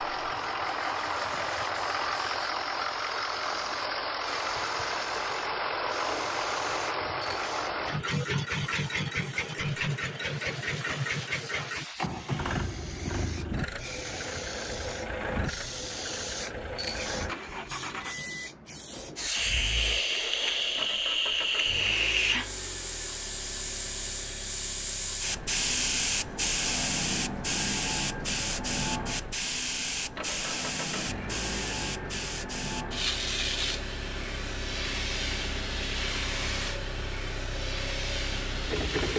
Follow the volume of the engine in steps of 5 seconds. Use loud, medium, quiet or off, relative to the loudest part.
loud, loud, loud, medium, quiet, quiet, medium, medium.